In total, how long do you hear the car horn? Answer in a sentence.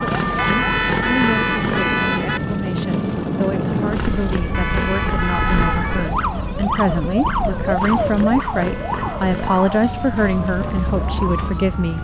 The car horn can be heard for 5 seconds in total.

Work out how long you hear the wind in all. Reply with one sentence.
The wind can be heard for 12 seconds in total.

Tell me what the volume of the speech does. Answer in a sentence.
The volume of the speech goes up.